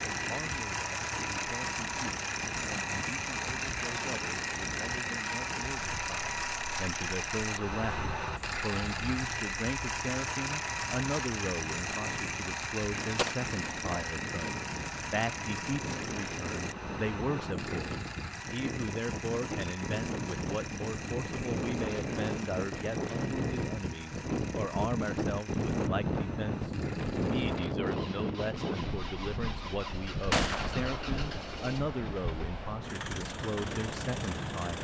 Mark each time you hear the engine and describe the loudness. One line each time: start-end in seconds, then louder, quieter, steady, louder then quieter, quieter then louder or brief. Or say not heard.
0.0-34.8 quieter.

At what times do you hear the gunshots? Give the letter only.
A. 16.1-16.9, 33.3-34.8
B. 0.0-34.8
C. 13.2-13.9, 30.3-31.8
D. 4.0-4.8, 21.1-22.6
C.